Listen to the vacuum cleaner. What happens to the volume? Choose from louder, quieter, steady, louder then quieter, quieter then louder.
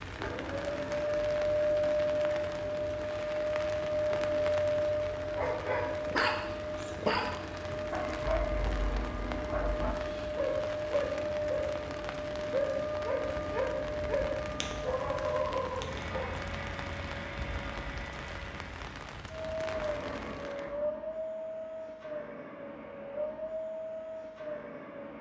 quieter.